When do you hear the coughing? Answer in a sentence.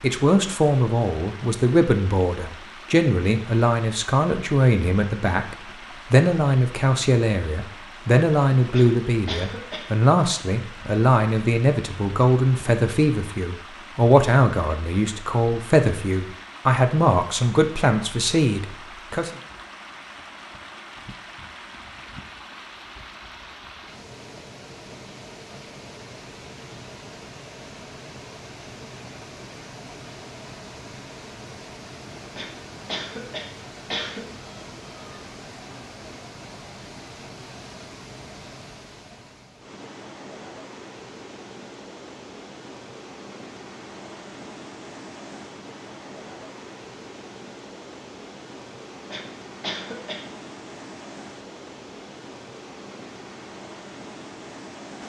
The coughing can be heard from 8.7 to 9.8 s, from 32.4 to 34.2 s and from 49.1 to 50.2 s.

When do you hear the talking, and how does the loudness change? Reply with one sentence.
You can hear the talking from 0.0 to 19.4 s, at a steady volume.